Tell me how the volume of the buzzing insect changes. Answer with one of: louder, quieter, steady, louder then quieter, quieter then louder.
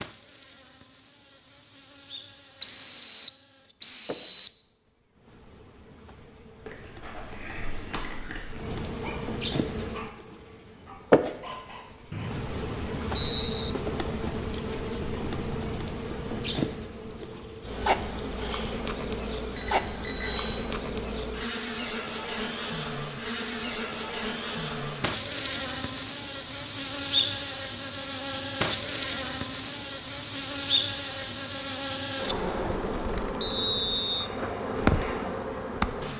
louder.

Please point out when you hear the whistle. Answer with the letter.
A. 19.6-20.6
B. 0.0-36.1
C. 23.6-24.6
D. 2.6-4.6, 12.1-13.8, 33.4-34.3
D.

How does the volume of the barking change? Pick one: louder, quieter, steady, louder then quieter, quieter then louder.
quieter then louder.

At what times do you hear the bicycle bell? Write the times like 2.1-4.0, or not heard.
19.6-20.6.